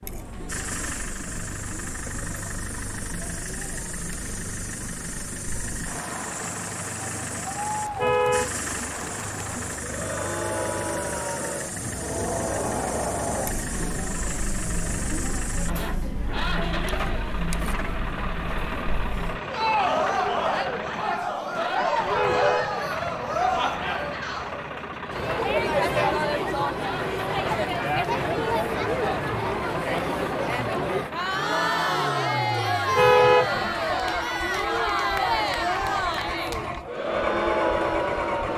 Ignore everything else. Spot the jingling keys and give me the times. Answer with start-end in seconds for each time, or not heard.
not heard.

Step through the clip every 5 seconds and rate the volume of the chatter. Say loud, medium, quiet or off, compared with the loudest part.
quiet, medium, medium, medium, loud, loud, loud, loud.